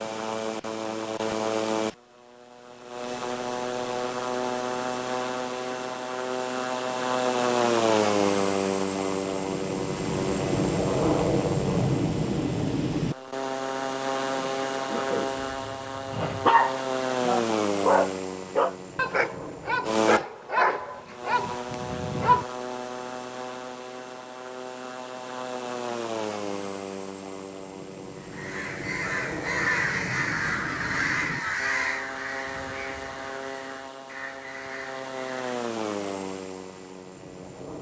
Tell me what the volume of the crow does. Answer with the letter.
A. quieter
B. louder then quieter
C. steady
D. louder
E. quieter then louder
A.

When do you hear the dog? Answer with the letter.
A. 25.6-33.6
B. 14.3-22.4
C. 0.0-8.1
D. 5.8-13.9
B.